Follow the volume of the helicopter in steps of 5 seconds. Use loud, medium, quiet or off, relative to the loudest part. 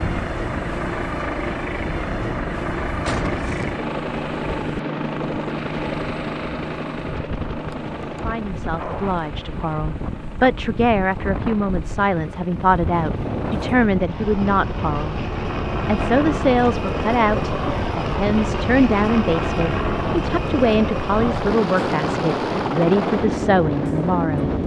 loud, loud, medium, loud, loud.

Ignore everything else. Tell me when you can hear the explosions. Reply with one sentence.
The explosions can be heard from 3.0 to 3.8 s.